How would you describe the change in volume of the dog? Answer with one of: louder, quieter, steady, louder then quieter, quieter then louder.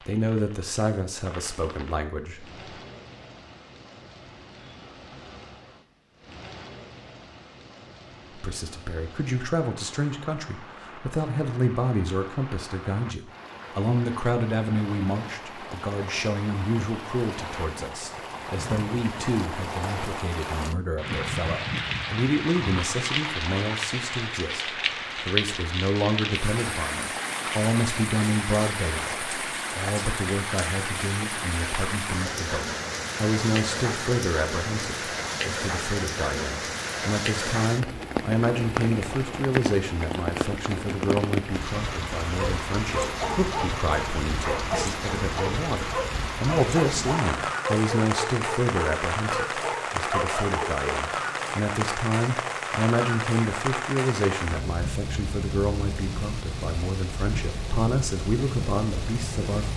steady.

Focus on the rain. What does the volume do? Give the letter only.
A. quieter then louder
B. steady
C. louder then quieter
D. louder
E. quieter
D.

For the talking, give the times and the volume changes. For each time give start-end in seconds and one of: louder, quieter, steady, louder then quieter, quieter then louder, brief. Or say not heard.
0.1-2.5 brief
8.3-59.7 steady.